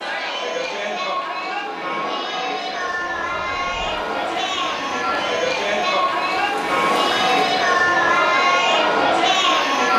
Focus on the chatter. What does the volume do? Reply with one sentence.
The volume of the chatter goes up.